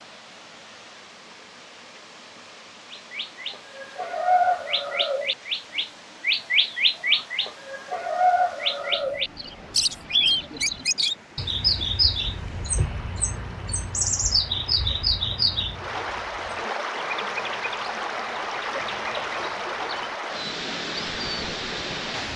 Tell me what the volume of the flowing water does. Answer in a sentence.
The volume of the flowing water goes up.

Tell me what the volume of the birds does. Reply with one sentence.
The volume of the birds goes down.